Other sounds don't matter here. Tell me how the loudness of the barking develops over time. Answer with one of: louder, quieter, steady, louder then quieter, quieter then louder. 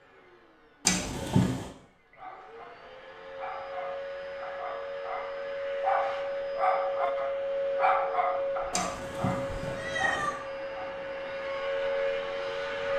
louder then quieter.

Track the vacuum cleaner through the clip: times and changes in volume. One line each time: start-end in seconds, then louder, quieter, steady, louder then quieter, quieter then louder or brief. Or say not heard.
0.0-12.9 louder.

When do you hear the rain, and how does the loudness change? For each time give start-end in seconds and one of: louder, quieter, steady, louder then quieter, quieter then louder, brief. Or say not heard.
not heard.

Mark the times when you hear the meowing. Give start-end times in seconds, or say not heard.
0.8-1.7, 8.7-10.4.